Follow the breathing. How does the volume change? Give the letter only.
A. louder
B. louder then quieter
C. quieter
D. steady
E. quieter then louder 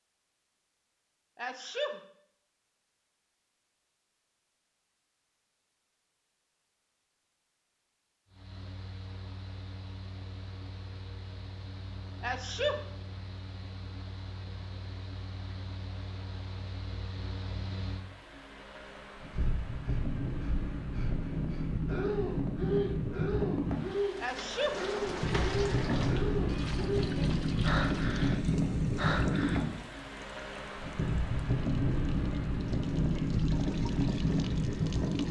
A.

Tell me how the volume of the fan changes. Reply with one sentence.
The loudness of the fan goes up.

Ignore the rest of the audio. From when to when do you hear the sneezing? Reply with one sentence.
You can hear the sneezing from 1.4 to 2.0 s, from 12.2 to 12.8 s and from 24.2 to 24.8 s.